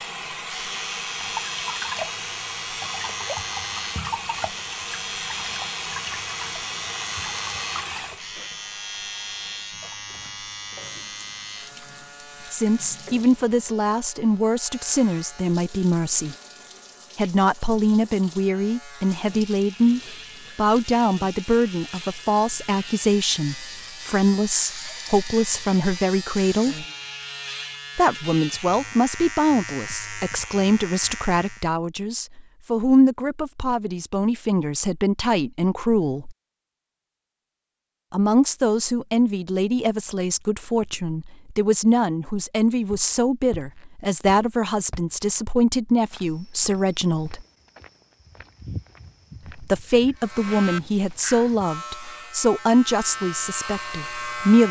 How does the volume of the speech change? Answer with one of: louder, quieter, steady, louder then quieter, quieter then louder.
steady.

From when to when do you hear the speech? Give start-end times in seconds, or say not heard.
12.5-16.4, 17.1-26.9, 27.9-36.4, 38.1-47.5, 49.5-54.6.